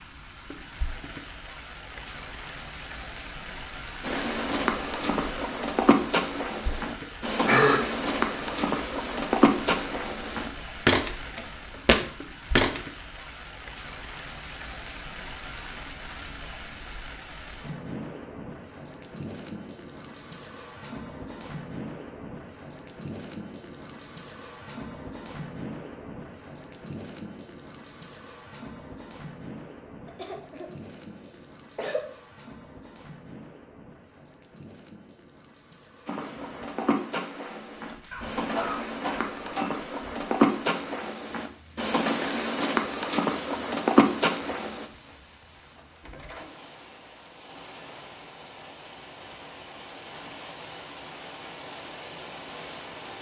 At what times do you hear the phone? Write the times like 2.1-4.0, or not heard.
not heard.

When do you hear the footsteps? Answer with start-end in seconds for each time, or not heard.
4.0-12.8, 36.0-44.9.